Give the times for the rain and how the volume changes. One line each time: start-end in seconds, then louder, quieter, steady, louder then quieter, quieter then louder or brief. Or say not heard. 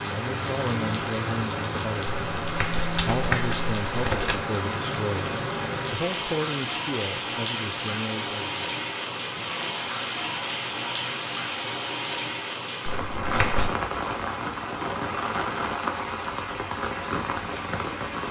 0.0-18.2 steady.